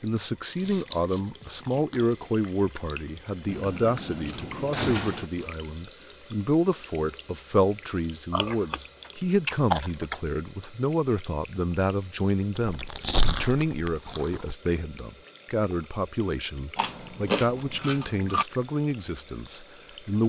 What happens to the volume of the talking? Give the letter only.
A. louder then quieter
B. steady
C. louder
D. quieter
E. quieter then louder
B.